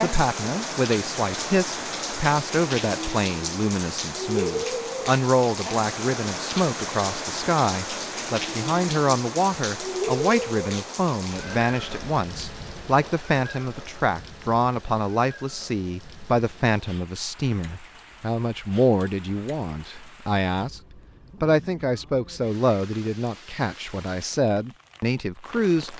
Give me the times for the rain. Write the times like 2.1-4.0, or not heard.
0.0-25.9.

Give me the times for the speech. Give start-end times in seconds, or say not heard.
0.0-20.8, 21.4-25.9.